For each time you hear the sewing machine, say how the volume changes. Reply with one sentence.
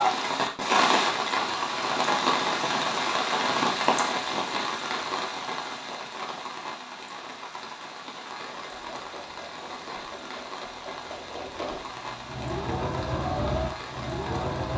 The sewing machine can be heard from 8.4 to 14.7 s, getting louder.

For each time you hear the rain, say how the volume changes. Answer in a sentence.
You can hear the rain from 0.0 to 14.7 s, getting quieter.